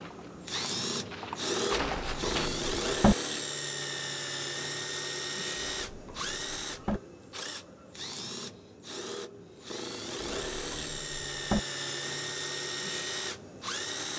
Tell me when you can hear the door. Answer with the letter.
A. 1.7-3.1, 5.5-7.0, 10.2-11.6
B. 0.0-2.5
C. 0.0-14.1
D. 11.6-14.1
A.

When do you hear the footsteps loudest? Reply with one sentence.
The volume of the footsteps peaks at 2 seconds.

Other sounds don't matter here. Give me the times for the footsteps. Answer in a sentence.
You can hear the footsteps from 0.0 to 2.5 s.